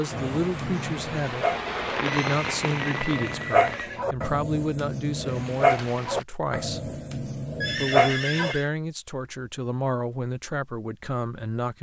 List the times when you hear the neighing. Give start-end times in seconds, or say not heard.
2.0-4.0, 7.6-8.7.